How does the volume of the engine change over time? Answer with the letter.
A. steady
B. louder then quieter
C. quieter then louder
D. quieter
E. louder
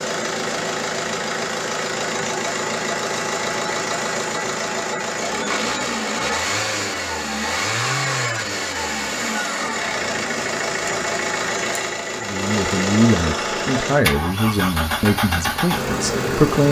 A.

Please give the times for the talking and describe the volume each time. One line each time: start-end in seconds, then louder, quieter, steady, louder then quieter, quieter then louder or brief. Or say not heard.
12.2-16.6 quieter.